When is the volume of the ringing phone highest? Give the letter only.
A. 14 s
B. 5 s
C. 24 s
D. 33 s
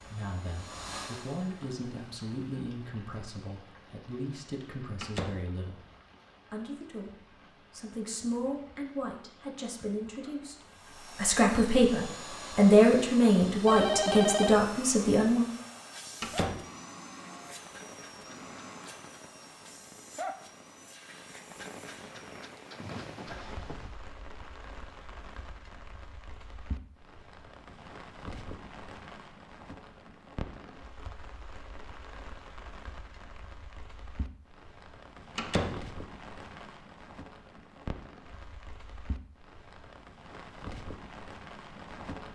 A.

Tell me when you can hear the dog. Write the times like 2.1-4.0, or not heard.
not heard.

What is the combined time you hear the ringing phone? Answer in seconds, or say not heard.
2 s.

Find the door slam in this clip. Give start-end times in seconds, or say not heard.
5.0-5.5, 16.2-16.6, 35.4-35.8.